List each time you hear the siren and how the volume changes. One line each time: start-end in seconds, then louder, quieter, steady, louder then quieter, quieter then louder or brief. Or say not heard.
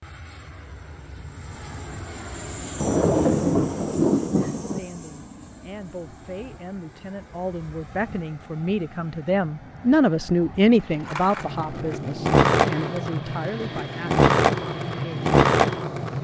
not heard.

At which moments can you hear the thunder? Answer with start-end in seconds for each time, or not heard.
2.8-4.8.